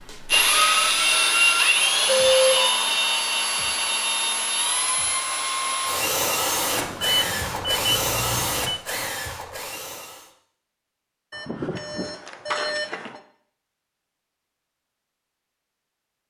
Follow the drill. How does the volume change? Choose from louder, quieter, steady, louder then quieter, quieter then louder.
quieter.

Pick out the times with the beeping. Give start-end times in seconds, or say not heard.
2.3-2.8, 6.7-8.8, 11.3-13.2.